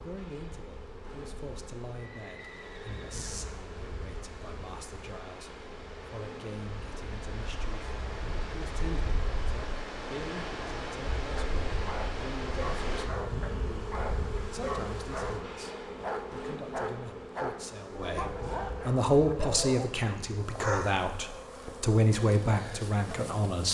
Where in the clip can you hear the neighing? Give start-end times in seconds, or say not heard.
1.9-3.4.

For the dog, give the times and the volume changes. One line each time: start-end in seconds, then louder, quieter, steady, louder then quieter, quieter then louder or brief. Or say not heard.
11.2-21.1 steady.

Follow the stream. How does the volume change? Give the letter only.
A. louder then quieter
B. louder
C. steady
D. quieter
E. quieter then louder
B.